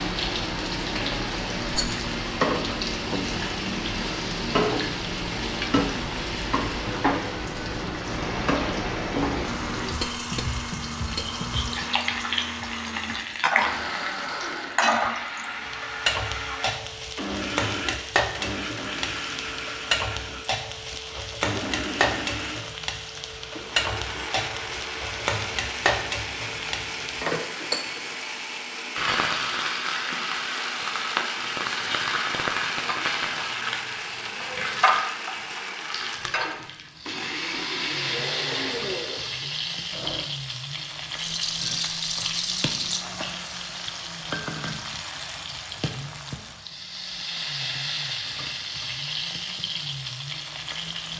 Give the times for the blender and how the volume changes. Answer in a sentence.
The blender can be heard from 0.0 to 40.3 s, at a steady volume.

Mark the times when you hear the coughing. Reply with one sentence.
The coughing can't be heard in this clip.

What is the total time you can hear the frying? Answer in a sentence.
You can hear the frying for 51 seconds altogether.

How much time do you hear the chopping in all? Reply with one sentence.
The chopping can't be heard in this clip.